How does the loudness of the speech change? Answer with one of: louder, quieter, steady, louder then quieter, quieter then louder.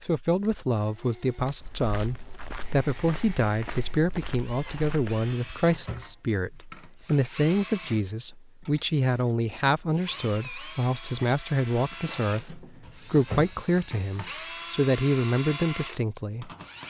steady.